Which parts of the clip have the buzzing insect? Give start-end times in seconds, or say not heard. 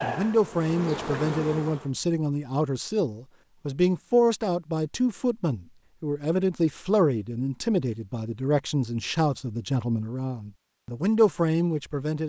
0.0-1.9.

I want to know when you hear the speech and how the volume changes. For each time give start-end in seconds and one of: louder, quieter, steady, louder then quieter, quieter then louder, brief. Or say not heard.
0.0-12.2 steady.